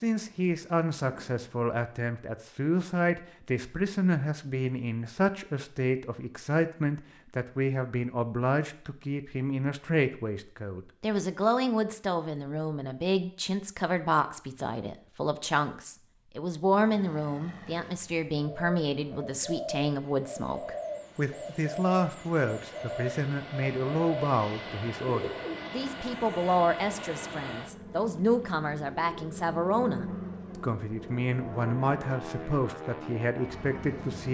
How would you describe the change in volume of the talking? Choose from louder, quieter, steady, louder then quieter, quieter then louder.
steady.